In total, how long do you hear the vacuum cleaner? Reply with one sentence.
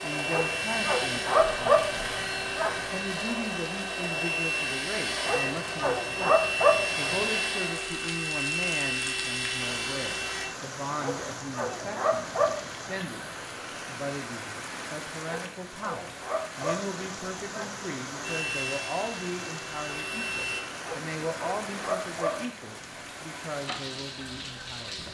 You can hear the vacuum cleaner for 13 seconds altogether.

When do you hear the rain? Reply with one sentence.
You can hear the rain from 0.0 to 25.0 s.